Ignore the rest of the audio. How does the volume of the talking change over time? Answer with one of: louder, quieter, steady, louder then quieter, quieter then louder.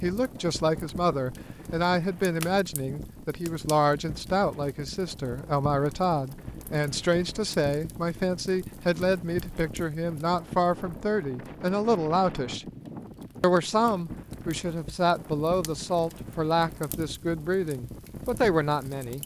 steady.